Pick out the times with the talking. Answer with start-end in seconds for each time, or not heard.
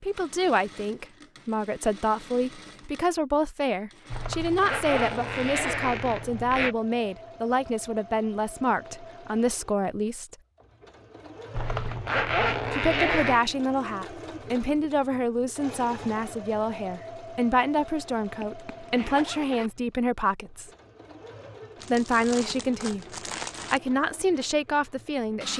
0.0-10.3, 12.7-20.7, 21.9-23.1, 23.7-25.5.